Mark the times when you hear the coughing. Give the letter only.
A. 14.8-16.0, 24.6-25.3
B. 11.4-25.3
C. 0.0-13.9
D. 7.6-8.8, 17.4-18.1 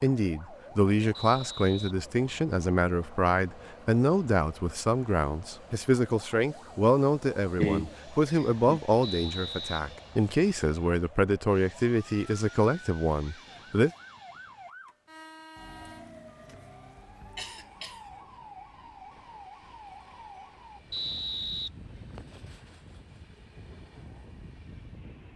D.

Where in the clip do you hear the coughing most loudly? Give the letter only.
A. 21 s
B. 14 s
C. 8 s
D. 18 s
C.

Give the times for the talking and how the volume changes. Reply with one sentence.
The talking can be heard from 0.0 to 13.9 s, at a steady volume.